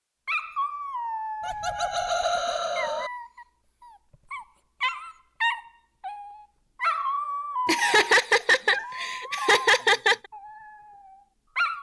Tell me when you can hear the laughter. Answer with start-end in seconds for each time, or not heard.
1.4-3.1, 7.7-10.2.